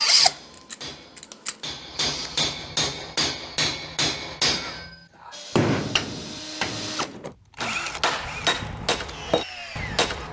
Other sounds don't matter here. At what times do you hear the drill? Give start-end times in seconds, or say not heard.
0.0-2.5, 5.3-10.2.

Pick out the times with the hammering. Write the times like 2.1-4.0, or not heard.
0.0-10.2.